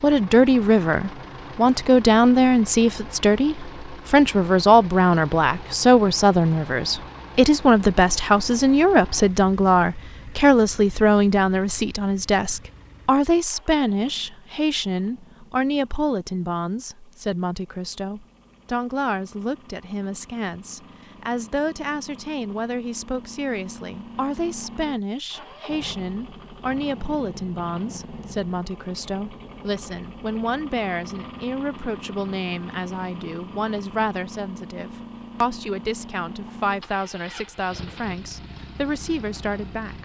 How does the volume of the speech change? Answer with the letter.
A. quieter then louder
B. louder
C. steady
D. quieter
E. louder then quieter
D.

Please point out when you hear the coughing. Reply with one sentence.
You can't hear the coughing here.